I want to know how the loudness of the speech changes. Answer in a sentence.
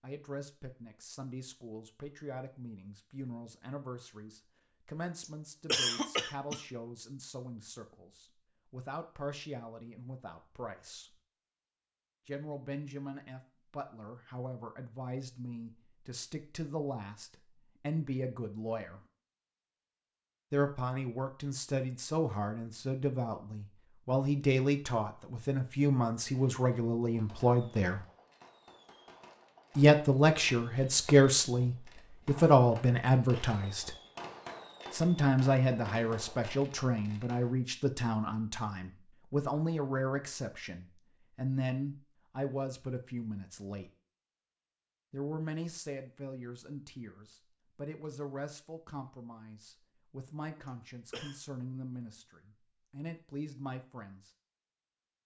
The volume of the speech goes up, then down.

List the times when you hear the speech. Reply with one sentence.
The speech can be heard from 0.0 to 11.2 s, from 12.2 to 19.0 s, from 20.5 to 28.1 s, from 29.8 to 34.0 s, from 34.9 to 43.9 s and from 45.1 to 54.3 s.